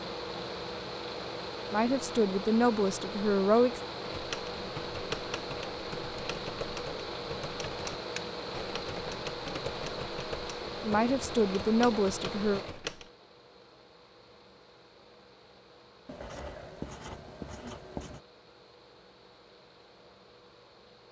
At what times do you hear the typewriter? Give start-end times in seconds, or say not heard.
4.0-13.1.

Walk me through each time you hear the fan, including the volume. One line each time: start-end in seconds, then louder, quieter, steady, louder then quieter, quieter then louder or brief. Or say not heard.
0.0-21.0 quieter.